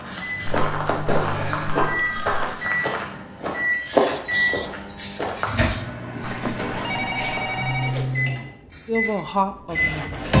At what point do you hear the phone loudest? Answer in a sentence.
The loudest moment of the phone is at 7 seconds.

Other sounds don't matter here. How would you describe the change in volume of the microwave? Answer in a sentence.
The volume of the microwave stays about the same.